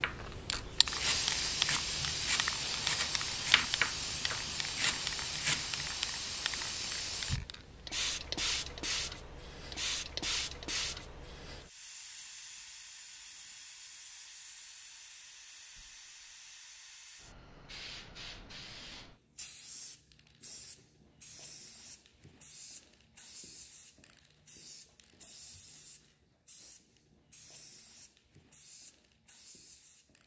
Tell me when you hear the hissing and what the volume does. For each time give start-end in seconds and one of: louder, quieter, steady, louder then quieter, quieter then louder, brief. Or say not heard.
0.0-30.2 quieter.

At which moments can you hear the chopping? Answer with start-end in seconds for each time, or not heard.
0.0-5.9.